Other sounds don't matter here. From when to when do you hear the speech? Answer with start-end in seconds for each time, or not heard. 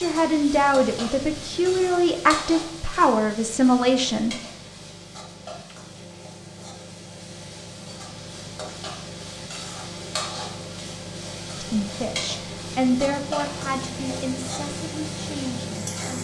0.0-4.3, 11.6-16.1.